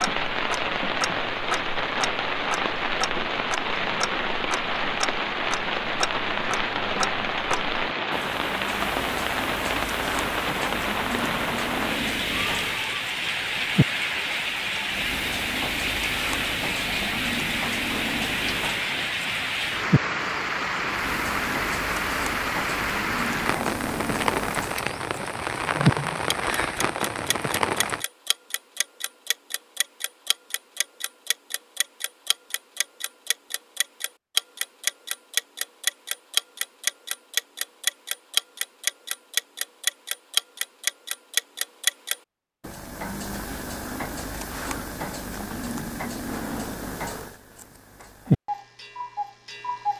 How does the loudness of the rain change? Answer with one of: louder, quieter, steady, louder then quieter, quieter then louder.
steady.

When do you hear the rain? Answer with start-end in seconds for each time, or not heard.
0.0-28.1.